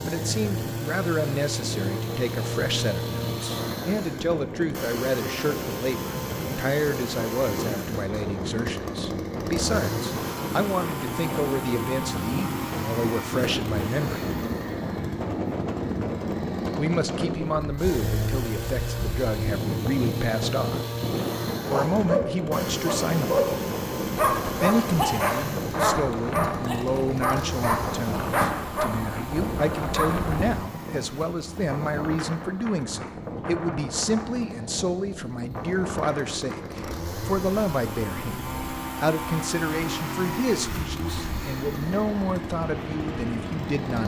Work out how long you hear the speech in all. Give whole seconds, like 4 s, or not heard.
40 s.